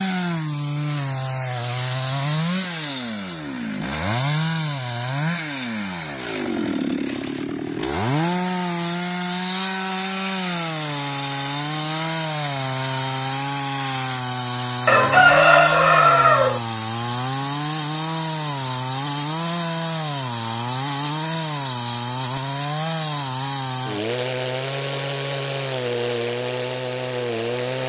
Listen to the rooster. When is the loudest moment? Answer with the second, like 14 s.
15 s.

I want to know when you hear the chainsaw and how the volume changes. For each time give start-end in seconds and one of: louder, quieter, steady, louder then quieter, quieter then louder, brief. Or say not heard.
0.0-27.8 steady.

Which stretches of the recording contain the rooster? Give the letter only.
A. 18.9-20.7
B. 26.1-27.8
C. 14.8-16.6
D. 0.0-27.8
C.